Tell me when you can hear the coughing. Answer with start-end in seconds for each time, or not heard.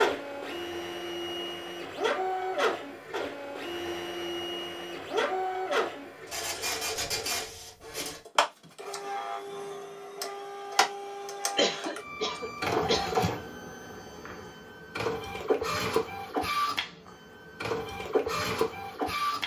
11.6-13.2.